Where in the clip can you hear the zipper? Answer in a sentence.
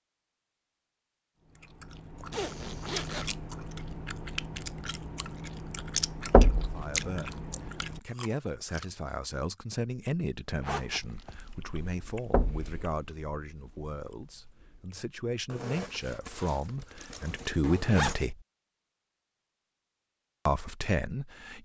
The zipper can be heard from 2.3 to 3.4 s, from 10.6 to 11.4 s and from 15.4 to 18.1 s.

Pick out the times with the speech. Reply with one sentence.
You can hear the speech from 6.5 to 18.4 s and from 20.4 to 21.6 s.